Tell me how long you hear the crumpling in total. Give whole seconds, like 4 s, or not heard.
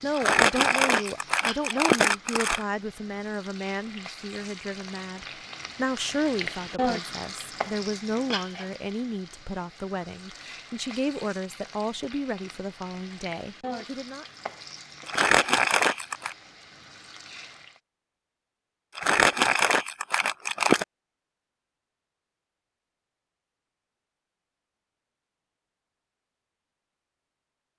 6 s.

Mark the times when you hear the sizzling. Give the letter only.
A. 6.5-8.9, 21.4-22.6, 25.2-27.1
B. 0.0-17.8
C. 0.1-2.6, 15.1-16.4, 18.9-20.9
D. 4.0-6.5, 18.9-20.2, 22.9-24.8
B.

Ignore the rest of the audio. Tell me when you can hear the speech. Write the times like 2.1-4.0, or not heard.
0.0-14.2.